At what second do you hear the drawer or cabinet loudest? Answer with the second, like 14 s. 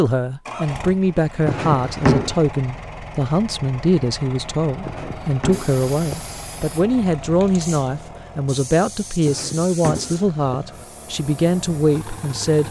2 s.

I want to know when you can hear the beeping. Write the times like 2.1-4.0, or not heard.
not heard.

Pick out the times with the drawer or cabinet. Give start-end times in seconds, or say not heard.
1.4-2.4, 4.8-6.2, 9.2-10.8.